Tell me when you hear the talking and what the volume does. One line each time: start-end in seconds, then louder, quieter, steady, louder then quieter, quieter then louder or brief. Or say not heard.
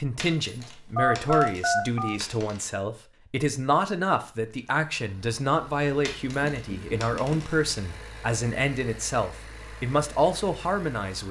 0.0-11.2 steady.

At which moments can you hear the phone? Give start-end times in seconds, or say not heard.
0.9-2.1, 6.5-7.5.